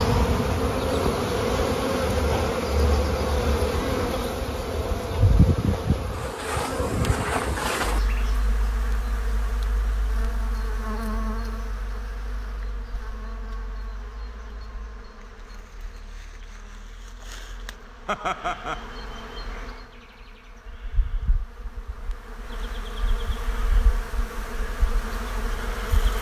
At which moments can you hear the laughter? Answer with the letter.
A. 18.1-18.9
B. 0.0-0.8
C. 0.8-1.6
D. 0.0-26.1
A.